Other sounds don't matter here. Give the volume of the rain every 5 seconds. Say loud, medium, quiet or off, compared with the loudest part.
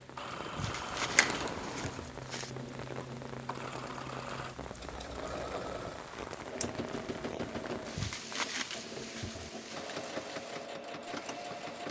loud, loud, medium.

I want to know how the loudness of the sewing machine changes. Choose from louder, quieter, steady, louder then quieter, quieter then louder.
steady.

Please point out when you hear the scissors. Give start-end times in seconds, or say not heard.
1.1-2.0, 6.6-7.2.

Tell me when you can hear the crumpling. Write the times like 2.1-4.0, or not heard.
0.6-2.5, 8.0-9.8.